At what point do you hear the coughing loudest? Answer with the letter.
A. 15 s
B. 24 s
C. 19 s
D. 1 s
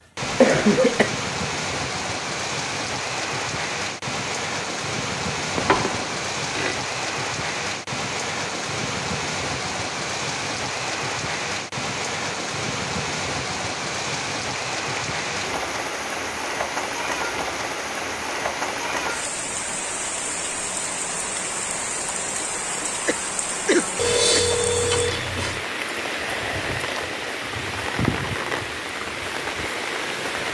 D.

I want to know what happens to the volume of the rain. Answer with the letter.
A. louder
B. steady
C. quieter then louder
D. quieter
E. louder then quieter
B.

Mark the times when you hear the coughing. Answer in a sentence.
You can hear the coughing from 0.2 to 1.1 s and from 22.7 to 24.4 s.